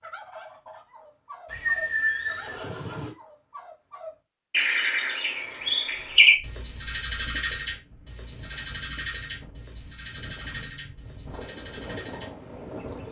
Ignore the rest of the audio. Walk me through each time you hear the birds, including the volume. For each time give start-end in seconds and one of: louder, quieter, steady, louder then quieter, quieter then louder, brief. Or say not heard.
0.0-13.0 louder then quieter.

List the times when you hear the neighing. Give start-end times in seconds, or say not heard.
1.4-3.1.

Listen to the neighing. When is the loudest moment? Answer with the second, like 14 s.
2 s.